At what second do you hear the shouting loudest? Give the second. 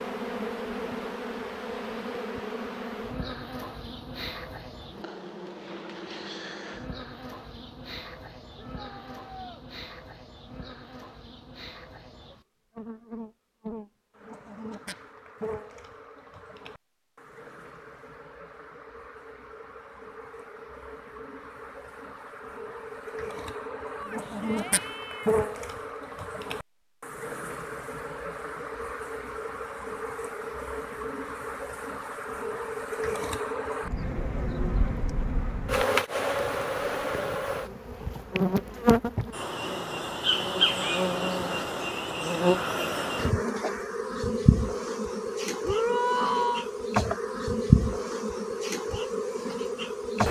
46 s.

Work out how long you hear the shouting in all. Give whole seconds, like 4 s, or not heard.
4 s.